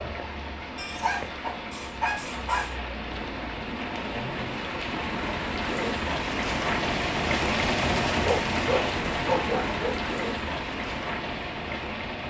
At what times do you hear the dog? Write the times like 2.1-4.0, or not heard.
0.8-2.8, 8.2-10.0.